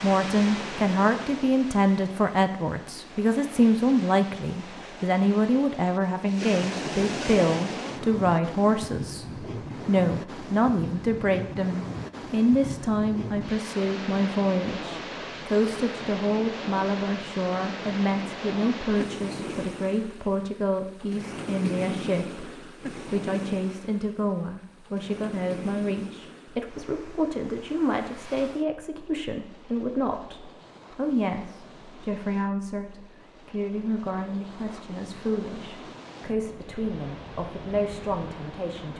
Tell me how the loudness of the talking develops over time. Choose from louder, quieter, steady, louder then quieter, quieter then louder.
quieter.